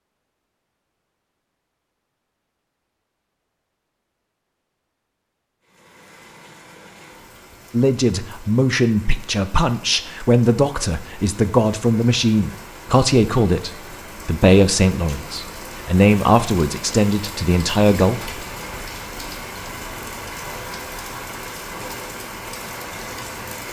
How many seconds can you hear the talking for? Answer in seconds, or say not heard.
11 s.